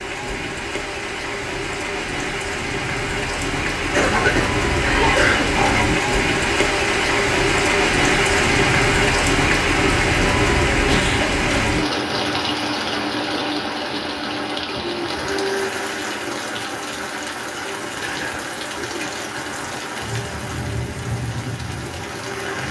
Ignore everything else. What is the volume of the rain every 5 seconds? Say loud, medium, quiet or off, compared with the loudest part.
medium, loud, loud, medium, medium.